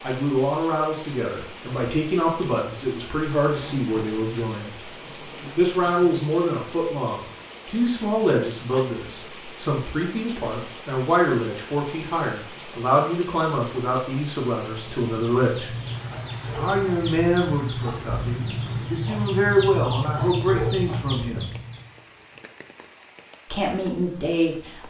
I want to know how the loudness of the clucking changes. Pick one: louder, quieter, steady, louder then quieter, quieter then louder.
louder.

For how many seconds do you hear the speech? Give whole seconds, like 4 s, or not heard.
21 s.